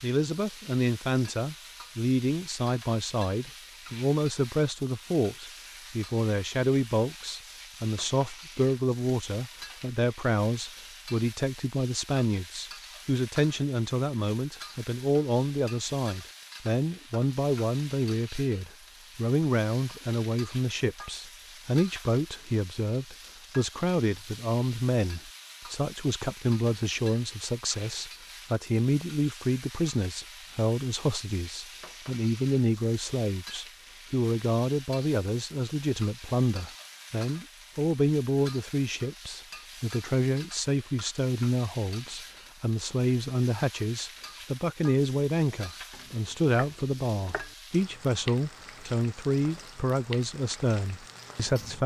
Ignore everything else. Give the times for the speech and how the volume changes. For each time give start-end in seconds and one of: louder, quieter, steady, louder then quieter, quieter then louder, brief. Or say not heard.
0.0-51.8 steady.